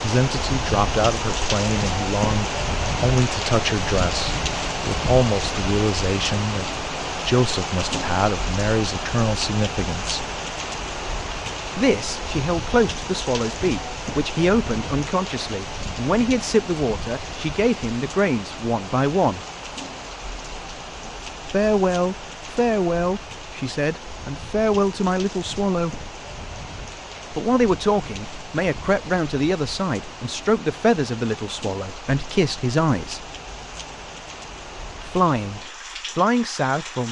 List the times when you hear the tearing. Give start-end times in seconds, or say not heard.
not heard.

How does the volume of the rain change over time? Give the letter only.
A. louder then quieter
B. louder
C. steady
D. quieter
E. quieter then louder
D.